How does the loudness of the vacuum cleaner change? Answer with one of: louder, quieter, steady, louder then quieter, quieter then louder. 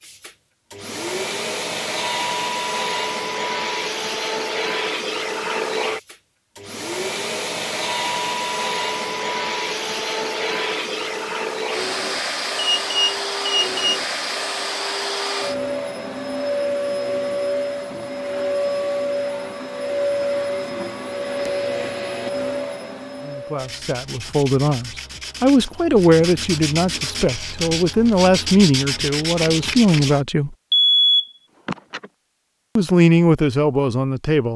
steady.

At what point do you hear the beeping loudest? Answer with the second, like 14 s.
31 s.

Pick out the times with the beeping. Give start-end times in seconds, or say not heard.
12.6-13.8, 30.7-32.0.